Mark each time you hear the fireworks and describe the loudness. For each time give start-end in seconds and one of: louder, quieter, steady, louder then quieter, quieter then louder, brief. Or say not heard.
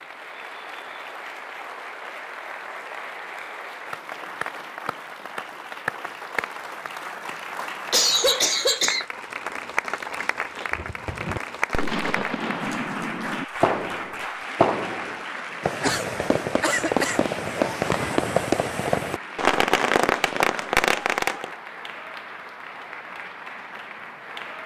10.7-21.5 louder.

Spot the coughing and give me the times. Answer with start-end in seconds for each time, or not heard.
7.9-9.1.